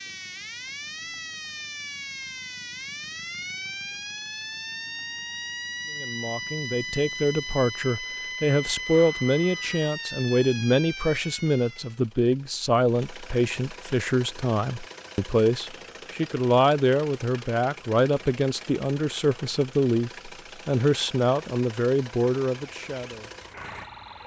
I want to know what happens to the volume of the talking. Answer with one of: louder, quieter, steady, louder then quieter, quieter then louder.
steady.